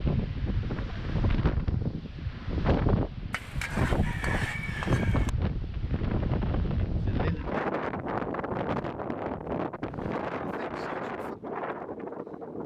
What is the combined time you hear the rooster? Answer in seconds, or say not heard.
2 s.